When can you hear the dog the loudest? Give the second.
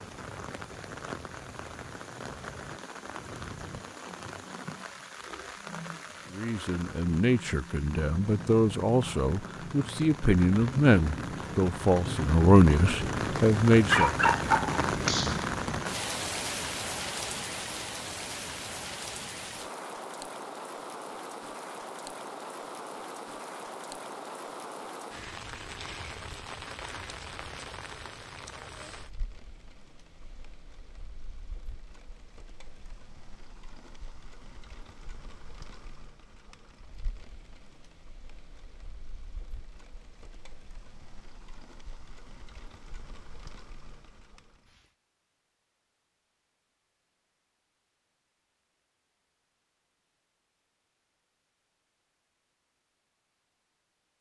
14 s.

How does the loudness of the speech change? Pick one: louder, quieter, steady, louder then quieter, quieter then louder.
louder.